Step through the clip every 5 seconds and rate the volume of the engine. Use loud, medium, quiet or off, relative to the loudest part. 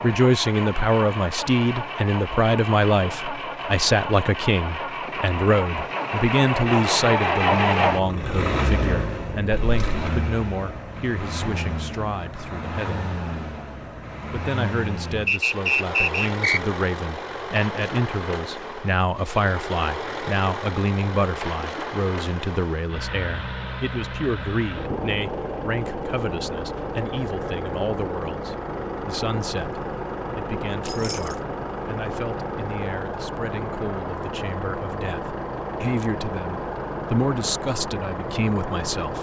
medium, loud, medium, medium, medium, medium, medium, medium.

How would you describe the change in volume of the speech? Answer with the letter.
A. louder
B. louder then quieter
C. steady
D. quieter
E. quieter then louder
D.